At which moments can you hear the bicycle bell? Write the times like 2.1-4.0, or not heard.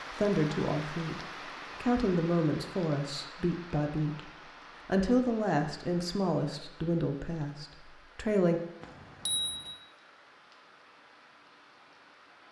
8.8-9.8.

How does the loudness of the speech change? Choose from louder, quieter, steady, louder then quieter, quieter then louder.
steady.